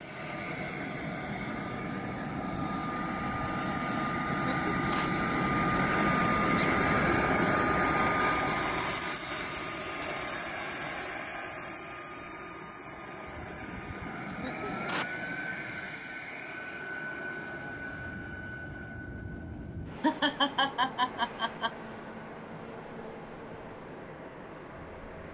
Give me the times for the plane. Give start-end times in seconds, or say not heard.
0.0-25.2.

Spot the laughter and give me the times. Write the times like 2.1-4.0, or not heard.
4.3-5.1, 14.2-15.2, 20.0-21.7.